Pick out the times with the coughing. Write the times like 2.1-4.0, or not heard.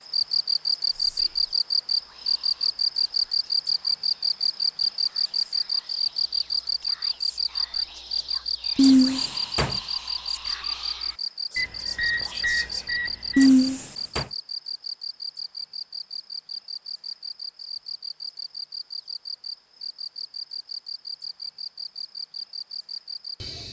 8.8-9.8, 13.3-14.2.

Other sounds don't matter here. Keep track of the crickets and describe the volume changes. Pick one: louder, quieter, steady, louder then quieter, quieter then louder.
quieter.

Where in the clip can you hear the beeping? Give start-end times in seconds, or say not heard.
11.6-13.5.